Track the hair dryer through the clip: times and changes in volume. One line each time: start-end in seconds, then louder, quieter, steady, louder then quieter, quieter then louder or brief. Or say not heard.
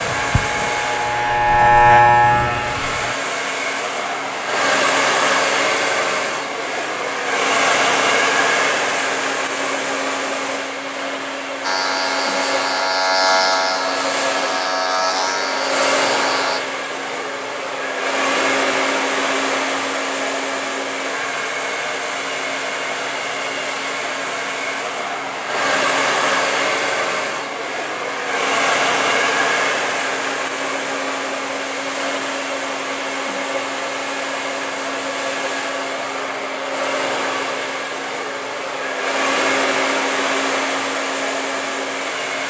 0.0-42.4 steady.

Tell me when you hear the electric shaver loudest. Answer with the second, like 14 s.
2 s.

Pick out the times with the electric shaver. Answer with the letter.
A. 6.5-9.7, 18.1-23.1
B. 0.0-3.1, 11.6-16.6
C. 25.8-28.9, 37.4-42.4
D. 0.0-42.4
B.